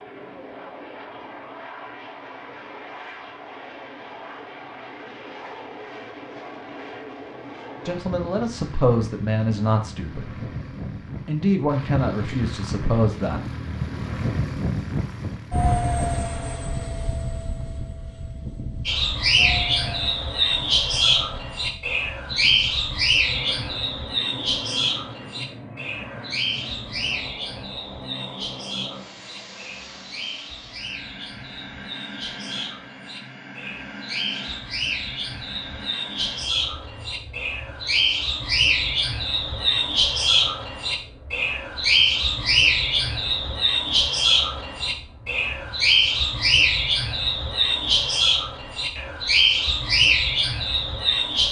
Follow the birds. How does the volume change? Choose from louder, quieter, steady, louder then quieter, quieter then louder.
quieter then louder.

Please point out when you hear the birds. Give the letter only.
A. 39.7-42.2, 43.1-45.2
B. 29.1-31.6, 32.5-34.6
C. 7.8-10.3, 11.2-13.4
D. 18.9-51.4
D.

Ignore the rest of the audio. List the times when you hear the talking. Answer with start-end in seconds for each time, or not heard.
7.8-10.3, 11.2-13.4.